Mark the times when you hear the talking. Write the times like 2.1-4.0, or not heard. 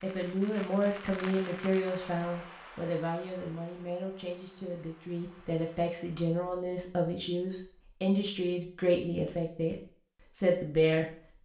0.0-11.2.